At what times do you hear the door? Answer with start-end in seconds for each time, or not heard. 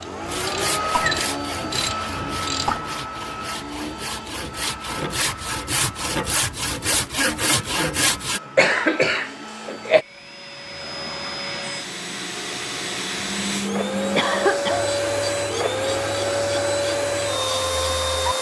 not heard.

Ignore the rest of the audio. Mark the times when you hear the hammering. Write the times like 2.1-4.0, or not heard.
not heard.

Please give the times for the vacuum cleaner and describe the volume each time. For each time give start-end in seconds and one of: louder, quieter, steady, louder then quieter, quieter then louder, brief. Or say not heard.
0.0-18.3 quieter then louder.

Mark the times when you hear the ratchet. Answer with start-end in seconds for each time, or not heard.
0.0-2.8, 14.7-18.3.